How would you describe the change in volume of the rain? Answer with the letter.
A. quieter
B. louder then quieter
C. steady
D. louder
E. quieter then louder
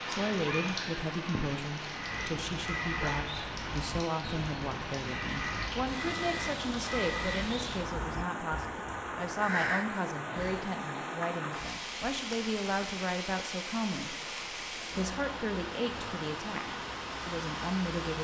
C.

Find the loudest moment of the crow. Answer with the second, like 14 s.
10 s.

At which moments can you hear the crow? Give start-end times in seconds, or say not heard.
1.9-10.7.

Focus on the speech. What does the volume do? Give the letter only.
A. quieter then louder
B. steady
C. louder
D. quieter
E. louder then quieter
B.